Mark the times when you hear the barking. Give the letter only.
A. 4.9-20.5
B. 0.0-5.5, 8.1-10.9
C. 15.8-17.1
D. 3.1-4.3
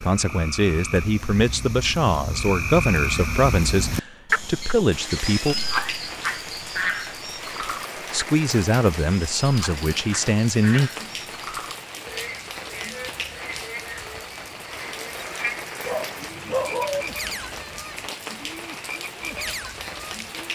C.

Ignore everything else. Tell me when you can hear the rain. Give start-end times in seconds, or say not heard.
4.9-20.5.